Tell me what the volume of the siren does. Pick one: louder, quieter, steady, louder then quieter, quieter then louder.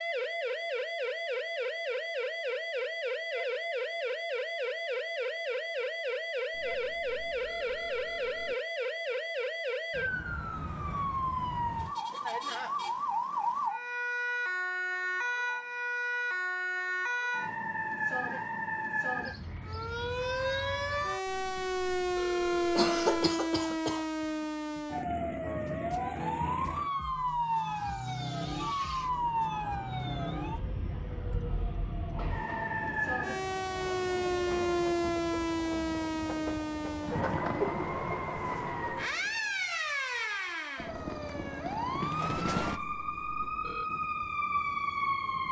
steady.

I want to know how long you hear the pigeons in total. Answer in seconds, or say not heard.
not heard.